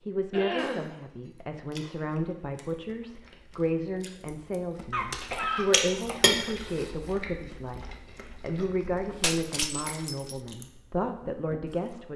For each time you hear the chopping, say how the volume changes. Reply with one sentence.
The chopping can't be heard in this clip.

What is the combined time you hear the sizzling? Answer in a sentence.
You can't hear the sizzling here.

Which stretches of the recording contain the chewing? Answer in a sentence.
The chewing can be heard from 1.4 to 12.1 s.